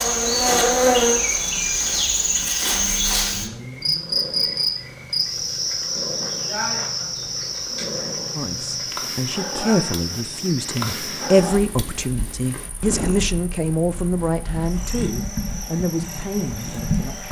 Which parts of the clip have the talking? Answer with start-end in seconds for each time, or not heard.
8.3-17.2.